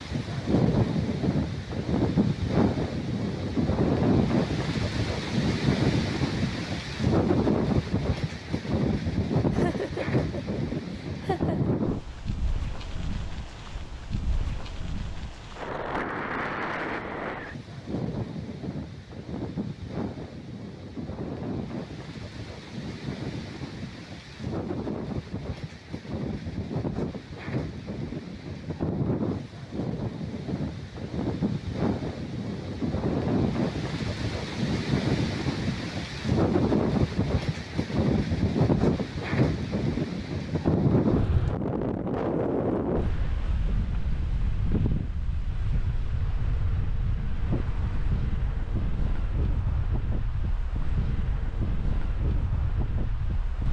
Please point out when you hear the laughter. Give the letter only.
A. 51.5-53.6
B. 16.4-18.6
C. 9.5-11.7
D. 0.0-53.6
C.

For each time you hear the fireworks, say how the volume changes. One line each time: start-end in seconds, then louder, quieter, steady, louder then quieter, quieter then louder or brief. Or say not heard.
not heard.